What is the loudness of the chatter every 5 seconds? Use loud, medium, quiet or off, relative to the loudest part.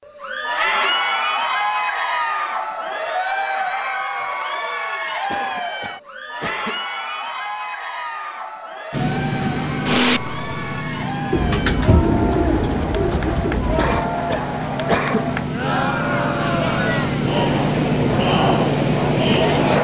loud, medium, medium, loud.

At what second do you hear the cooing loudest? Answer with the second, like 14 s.
12 s.